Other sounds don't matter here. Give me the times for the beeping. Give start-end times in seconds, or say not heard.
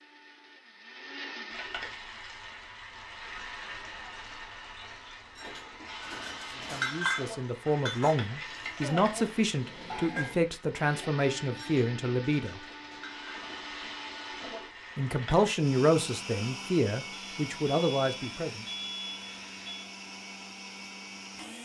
17.1-19.9.